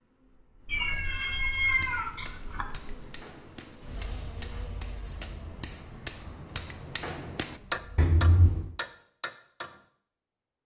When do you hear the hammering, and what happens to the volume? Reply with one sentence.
You can hear the hammering from 1.6 to 9.8 s, getting louder.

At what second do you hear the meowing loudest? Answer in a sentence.
The volume of the meowing peaks at 2 seconds.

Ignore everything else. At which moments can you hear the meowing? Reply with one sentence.
You can hear the meowing from 0.7 to 2.6 s and from 8.0 to 8.7 s.